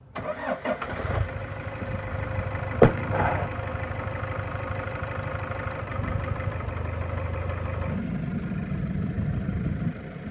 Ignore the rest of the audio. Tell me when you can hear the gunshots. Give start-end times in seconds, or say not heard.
2.0-3.5.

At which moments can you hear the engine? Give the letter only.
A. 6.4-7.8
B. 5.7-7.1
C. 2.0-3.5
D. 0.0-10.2
D.